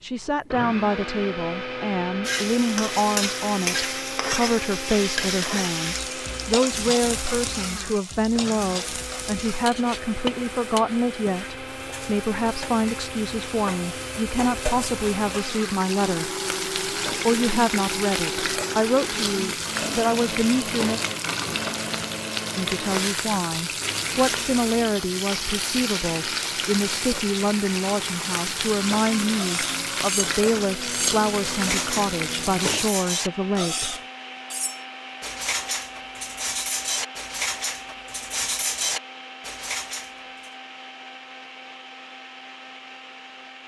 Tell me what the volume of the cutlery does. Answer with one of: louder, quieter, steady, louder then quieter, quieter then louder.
steady.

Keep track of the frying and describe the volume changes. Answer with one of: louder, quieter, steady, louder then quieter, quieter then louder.
quieter then louder.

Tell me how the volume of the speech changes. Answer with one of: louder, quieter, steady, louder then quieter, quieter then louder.
steady.